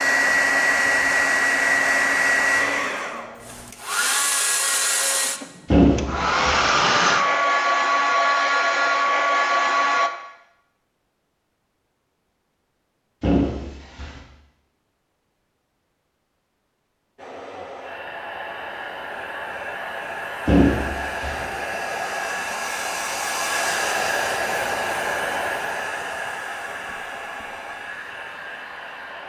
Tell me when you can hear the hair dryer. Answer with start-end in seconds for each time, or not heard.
0.0-10.1, 17.1-29.2.